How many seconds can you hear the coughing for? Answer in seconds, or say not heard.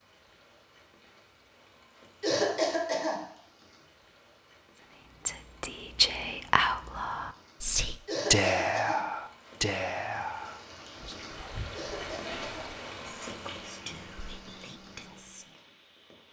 3 s.